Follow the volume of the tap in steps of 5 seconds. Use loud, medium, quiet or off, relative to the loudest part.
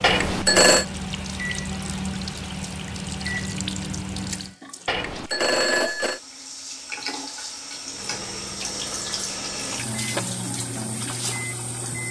medium, loud, loud.